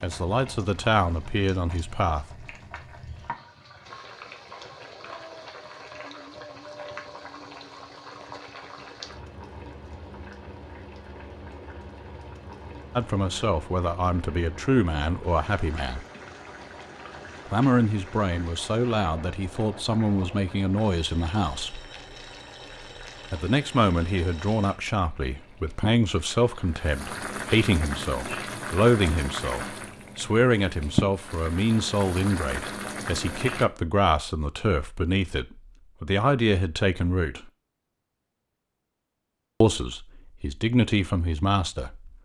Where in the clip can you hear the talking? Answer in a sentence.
The talking can be heard from 0.0 to 2.5 s, from 12.9 to 16.1 s, from 17.5 to 21.8 s, from 23.3 to 37.5 s and from 39.6 to 42.1 s.